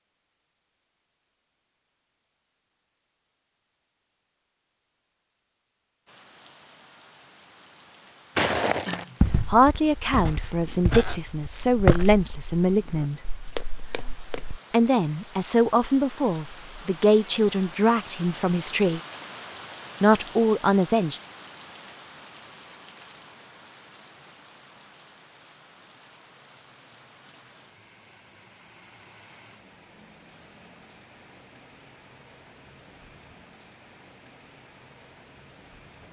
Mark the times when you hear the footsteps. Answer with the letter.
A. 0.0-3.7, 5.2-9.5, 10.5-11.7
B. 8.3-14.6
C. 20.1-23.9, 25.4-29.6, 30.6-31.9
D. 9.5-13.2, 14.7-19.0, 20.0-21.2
B.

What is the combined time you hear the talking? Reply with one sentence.
You can hear the talking for 9 seconds altogether.